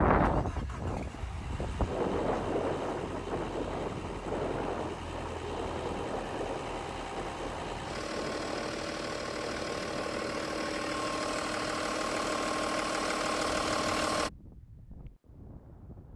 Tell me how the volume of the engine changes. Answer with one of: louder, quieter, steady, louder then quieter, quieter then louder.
louder.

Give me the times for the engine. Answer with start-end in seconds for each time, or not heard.
0.1-14.3.